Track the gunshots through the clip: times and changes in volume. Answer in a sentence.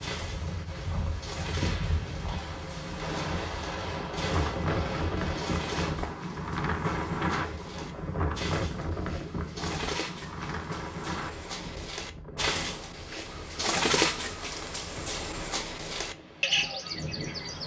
You can hear the gunshots from 1.6 to 6.0 s, getting louder.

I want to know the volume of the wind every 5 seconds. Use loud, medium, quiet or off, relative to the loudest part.
loud, loud, medium, medium.